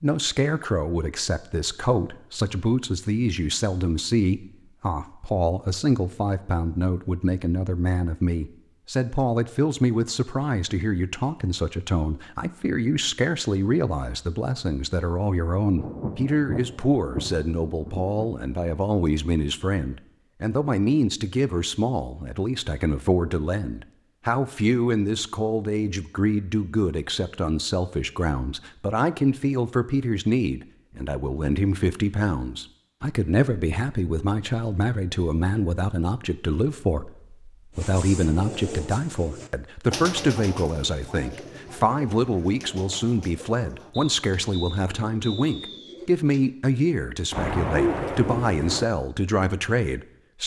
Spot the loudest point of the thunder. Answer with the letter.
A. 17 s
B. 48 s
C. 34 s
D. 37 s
B.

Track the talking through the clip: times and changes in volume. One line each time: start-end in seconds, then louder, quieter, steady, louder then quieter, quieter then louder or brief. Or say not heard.
0.0-50.4 steady.